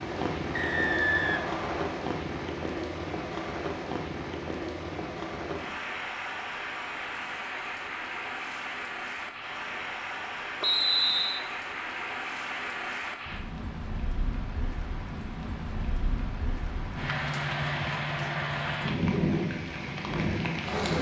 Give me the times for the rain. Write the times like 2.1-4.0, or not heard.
0.0-20.9.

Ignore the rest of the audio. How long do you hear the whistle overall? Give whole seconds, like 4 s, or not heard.
2 s.